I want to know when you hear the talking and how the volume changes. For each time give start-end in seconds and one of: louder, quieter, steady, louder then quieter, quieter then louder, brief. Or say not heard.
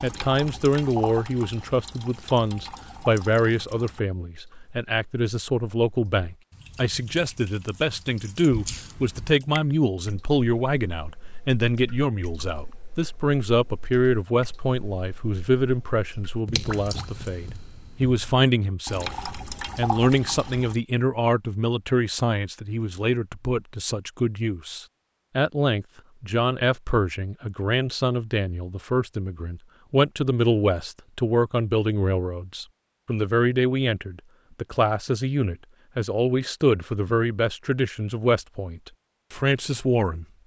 0.0-40.2 steady.